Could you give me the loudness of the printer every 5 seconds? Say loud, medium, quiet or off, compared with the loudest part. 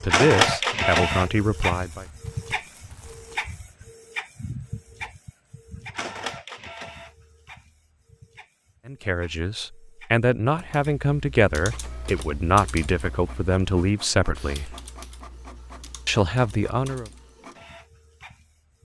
loud, quiet, quiet, quiet.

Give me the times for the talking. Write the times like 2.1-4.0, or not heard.
0.0-2.0, 8.8-14.8, 16.1-17.1.